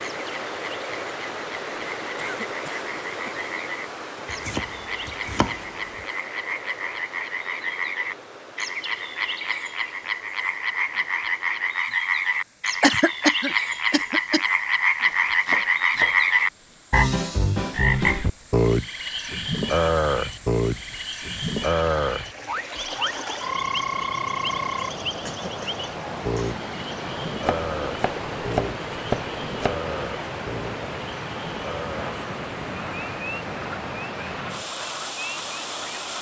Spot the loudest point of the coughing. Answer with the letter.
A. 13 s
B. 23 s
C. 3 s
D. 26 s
A.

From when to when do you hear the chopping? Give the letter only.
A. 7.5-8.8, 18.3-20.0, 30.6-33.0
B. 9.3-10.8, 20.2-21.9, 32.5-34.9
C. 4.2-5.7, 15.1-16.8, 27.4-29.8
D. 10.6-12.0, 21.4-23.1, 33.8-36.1
C.